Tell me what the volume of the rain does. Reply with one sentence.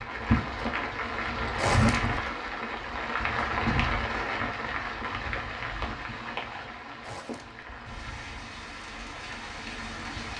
The volume of the rain goes down.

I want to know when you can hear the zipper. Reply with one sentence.
You can hear the zipper from 1.6 to 2.1 s and from 7.0 to 7.6 s.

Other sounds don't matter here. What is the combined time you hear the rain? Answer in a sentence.
You can hear the rain for 10 seconds altogether.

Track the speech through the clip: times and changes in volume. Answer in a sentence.
You can't hear the speech here.